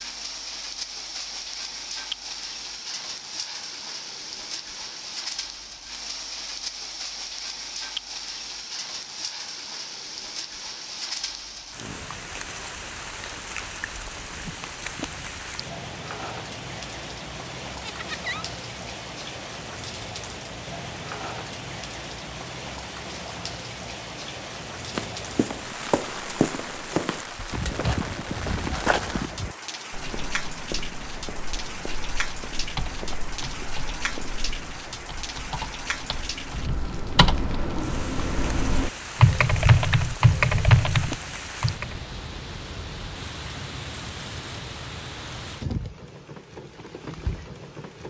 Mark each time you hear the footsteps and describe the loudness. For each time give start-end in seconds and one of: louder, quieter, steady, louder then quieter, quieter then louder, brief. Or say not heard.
24.9-34.8 quieter.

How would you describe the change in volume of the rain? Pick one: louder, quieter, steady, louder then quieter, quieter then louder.
steady.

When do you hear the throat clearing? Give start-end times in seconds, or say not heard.
not heard.